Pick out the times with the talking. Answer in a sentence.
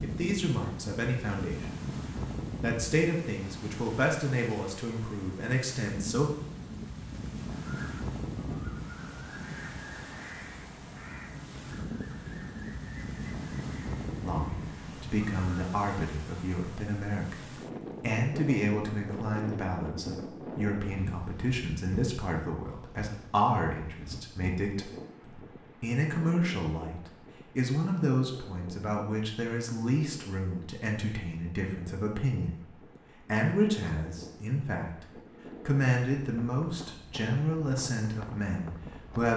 The talking can be heard from 0.0 to 1.9 s, from 2.6 to 6.3 s, from 14.2 to 17.4 s, from 18.0 to 35.0 s and from 35.6 to 39.3 s.